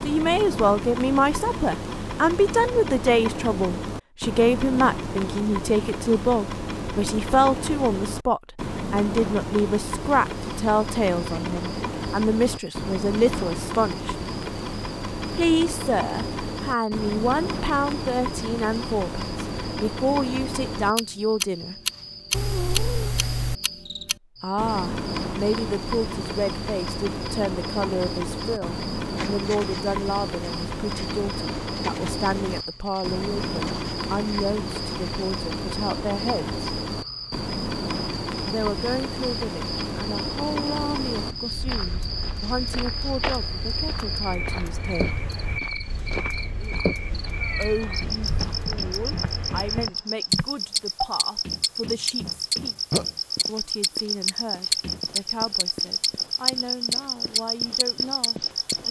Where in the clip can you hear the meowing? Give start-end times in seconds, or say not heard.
22.3-23.6, 47.4-48.0.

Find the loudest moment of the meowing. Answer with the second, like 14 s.
23 s.